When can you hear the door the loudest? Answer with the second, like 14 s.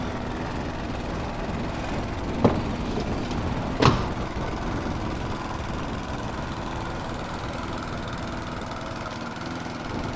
4 s.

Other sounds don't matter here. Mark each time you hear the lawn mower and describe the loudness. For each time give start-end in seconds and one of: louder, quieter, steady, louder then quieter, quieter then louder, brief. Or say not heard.
0.0-10.1 steady.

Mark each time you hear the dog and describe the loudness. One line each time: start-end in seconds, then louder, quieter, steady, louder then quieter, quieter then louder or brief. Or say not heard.
not heard.